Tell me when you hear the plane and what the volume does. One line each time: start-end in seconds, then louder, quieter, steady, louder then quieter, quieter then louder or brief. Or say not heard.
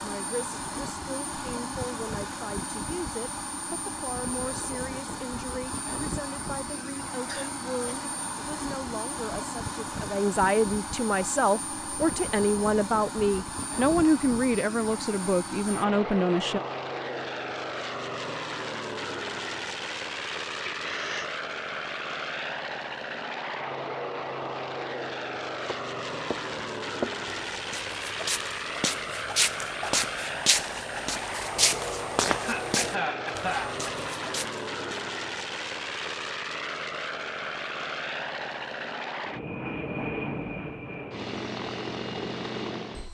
0.0-43.1 steady.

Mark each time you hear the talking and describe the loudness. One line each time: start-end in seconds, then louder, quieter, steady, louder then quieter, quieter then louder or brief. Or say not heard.
0.0-16.6 louder.